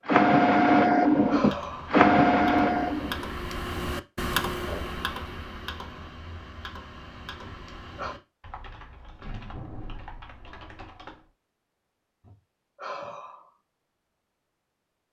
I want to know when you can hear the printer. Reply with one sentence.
The printer can be heard from 0.0 to 3.4 s.